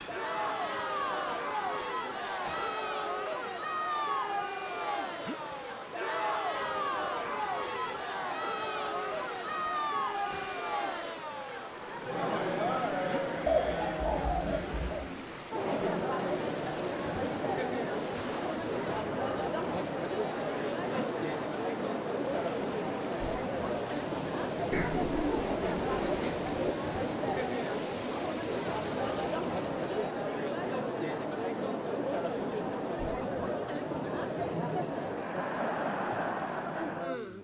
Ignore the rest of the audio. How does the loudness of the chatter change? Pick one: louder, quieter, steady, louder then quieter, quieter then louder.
steady.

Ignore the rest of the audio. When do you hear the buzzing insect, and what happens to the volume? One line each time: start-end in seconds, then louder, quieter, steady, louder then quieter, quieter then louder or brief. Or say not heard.
not heard.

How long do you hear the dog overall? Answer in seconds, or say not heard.
not heard.